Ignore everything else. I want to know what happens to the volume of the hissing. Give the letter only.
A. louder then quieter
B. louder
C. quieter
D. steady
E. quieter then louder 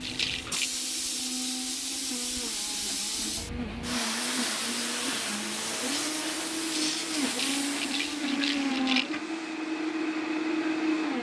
C.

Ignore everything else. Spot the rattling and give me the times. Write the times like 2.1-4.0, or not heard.
0.0-0.7, 7.2-9.2.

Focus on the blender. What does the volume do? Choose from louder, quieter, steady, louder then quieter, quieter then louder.
louder.